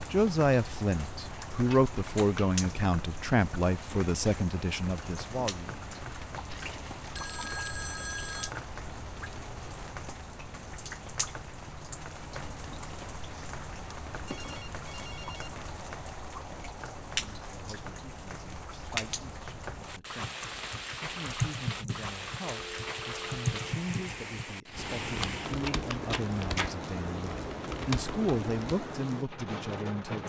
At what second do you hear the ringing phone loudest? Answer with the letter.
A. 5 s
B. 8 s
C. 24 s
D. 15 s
B.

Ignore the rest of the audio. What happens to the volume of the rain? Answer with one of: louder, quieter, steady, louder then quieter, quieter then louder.
steady.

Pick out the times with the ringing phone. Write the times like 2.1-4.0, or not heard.
6.5-8.5, 14.2-15.6, 22.6-23.6.